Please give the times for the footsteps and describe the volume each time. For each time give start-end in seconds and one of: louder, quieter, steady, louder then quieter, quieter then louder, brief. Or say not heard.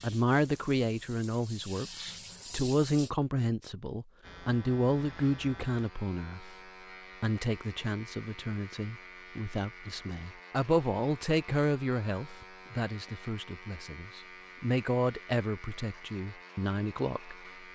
not heard.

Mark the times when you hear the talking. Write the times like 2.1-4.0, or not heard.
0.0-6.5, 7.2-17.4.